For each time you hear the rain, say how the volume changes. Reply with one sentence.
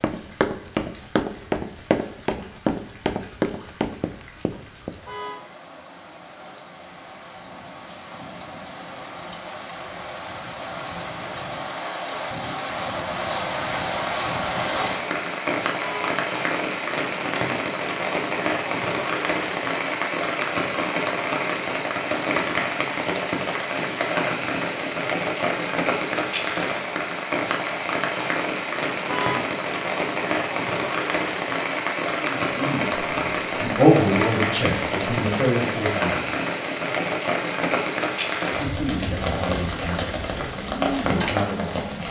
You can hear the rain from 0.0 to 42.0 s, getting louder.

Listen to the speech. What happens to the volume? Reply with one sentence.
The volume of the speech goes down.